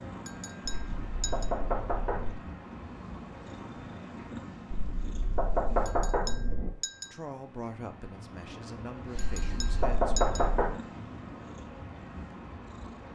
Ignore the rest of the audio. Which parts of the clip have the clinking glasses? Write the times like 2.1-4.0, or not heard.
0.2-1.5, 5.8-7.2, 9.2-10.5.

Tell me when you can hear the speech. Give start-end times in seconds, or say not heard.
7.0-10.2.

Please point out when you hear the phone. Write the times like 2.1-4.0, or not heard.
not heard.